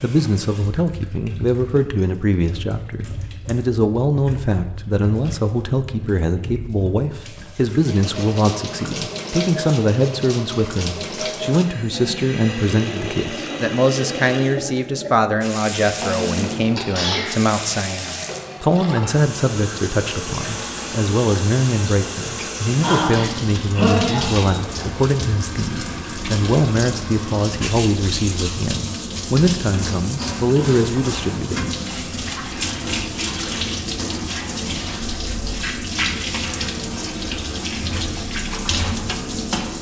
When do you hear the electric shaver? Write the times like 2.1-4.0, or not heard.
not heard.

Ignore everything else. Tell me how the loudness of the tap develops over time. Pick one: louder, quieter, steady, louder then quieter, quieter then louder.
louder.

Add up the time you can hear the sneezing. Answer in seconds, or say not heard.
3 s.